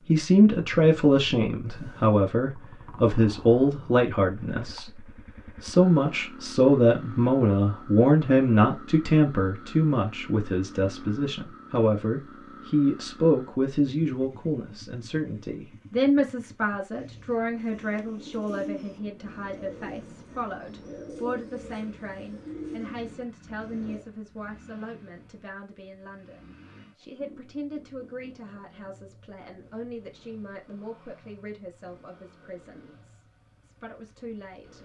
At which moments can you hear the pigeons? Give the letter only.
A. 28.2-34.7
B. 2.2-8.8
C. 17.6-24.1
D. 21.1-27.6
C.